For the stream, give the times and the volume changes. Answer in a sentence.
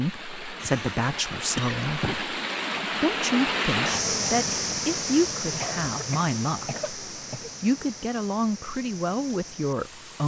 You can hear the stream from 0.0 to 10.2 s, getting louder then quieter.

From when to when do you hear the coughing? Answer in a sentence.
The coughing can be heard from 0.6 to 2.2 s and from 5.6 to 7.5 s.